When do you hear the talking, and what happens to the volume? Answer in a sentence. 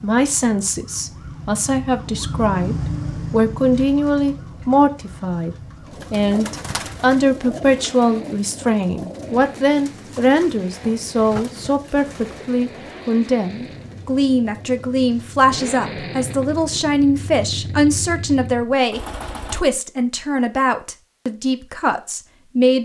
The talking can be heard from 0.0 to 22.8 s, at a steady volume.